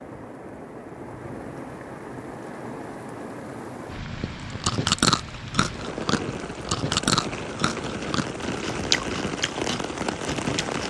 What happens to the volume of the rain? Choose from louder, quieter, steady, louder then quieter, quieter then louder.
louder.